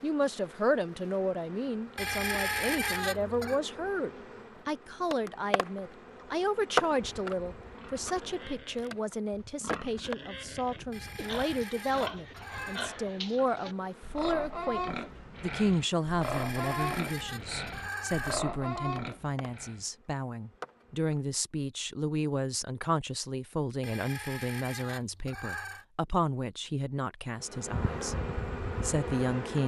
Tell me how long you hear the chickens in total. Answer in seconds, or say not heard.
8 s.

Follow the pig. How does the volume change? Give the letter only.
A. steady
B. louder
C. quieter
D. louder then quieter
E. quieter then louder
B.